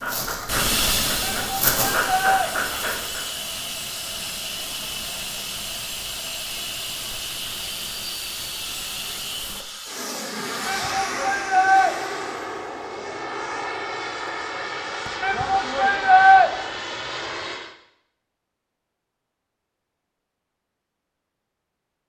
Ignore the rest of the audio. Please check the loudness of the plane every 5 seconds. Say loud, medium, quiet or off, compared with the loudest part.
loud, loud, loud, loud, off.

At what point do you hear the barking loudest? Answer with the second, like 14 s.
2 s.